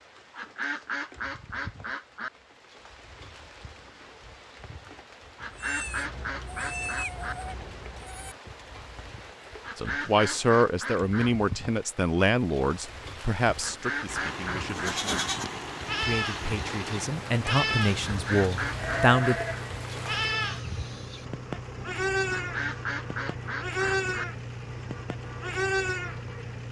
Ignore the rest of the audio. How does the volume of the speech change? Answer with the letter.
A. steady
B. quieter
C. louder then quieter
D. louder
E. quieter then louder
E.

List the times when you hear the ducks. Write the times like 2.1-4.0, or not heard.
0.3-2.3, 5.3-7.3, 9.6-11.3, 13.6-15.3, 18.1-19.6, 22.3-24.2.